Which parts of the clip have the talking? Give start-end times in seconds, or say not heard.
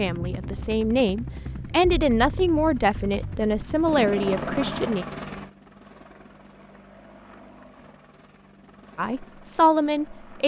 0.0-5.0, 8.9-10.4.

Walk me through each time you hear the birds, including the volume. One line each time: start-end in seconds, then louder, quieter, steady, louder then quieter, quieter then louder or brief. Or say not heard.
not heard.